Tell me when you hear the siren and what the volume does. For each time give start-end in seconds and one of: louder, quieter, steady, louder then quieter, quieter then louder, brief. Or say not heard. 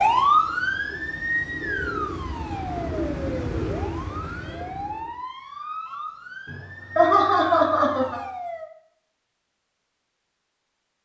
0.0-8.7 quieter.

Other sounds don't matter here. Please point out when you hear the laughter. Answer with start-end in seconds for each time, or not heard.
6.5-8.2.